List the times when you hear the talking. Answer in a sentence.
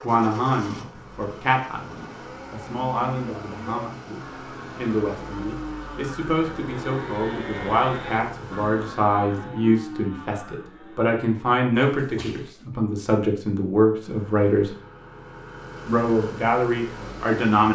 You can hear the talking from 0.0 to 14.7 s and from 15.8 to 17.6 s.